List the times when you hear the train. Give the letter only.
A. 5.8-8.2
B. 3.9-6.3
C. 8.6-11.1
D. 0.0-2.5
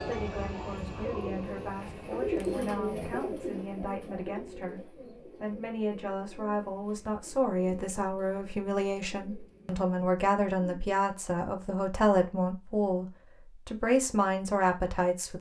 D.